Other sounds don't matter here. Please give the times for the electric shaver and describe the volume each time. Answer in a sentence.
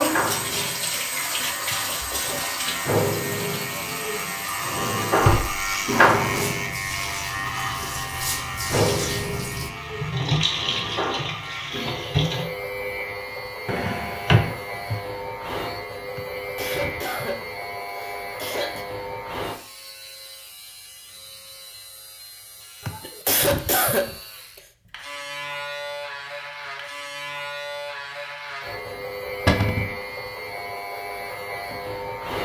You can hear the electric shaver from 0.0 to 32.3 s, getting quieter then louder.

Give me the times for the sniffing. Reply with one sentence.
The sniffing can be heard from 1.7 to 2.5 s, from 16.1 to 18.9 s and from 22.9 to 24.6 s.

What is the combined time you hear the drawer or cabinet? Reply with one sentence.
You can hear the drawer or cabinet for 2 seconds altogether.